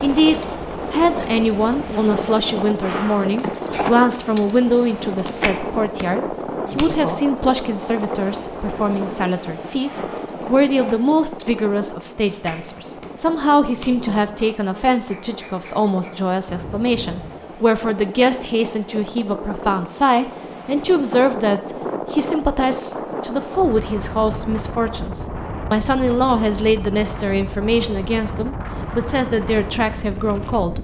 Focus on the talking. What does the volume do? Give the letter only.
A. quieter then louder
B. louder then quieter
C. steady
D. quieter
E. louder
C.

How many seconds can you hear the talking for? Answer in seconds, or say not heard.
31 s.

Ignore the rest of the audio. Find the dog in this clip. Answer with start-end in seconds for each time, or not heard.
not heard.